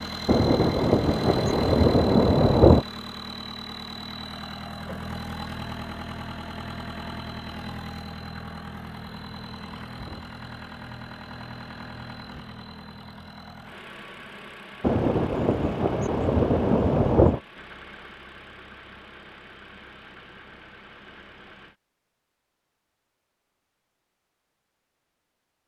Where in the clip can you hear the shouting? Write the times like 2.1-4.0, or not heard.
not heard.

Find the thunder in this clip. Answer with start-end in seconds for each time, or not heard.
0.2-2.9, 14.8-17.4.